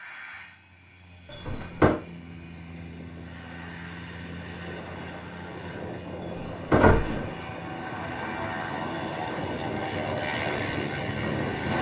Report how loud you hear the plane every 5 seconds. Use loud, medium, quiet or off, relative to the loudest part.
quiet, medium, loud.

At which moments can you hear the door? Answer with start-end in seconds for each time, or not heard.
1.3-1.9, 6.2-7.3.